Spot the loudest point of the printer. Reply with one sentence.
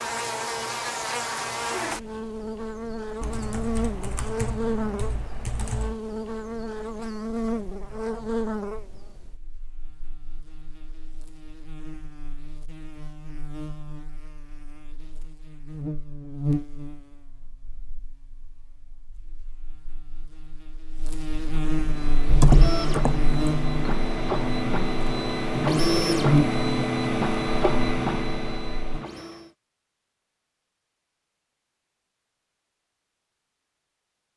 The volume of the printer peaks at 26 seconds.